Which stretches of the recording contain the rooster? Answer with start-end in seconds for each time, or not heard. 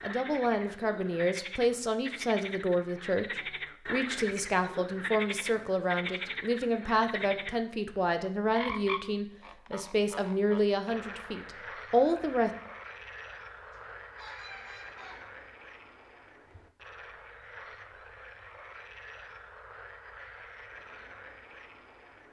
13.7-15.3.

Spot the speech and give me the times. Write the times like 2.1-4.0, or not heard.
0.0-12.5.